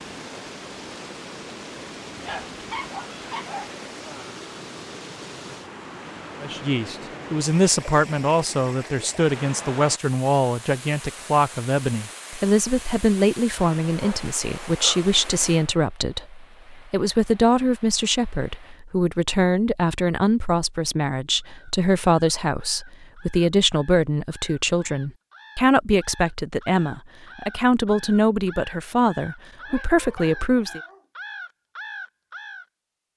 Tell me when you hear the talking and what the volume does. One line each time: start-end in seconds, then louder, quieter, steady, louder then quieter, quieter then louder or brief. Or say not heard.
6.4-30.8 steady.